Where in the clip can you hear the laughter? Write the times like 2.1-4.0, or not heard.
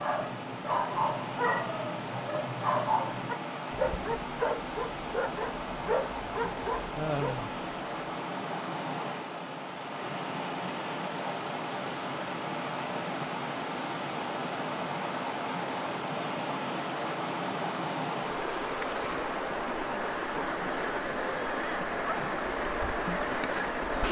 7.0-7.5.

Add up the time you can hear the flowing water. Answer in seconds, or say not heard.
24 s.